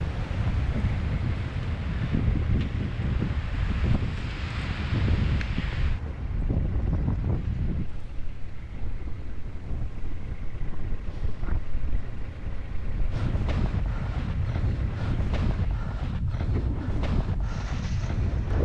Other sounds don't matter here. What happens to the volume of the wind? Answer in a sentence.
The volume of the wind goes down, then up.